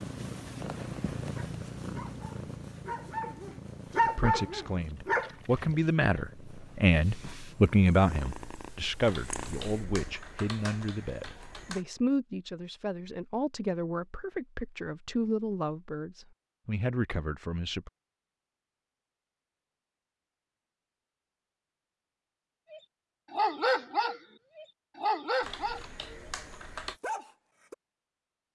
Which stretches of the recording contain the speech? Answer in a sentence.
You can hear the speech from 4.0 to 17.9 s.